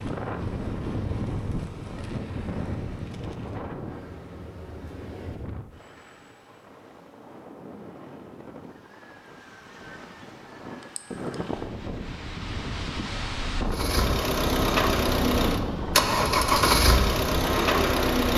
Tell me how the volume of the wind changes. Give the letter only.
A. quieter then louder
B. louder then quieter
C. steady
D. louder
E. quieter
A.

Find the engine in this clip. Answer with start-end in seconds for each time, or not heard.
13.7-18.3.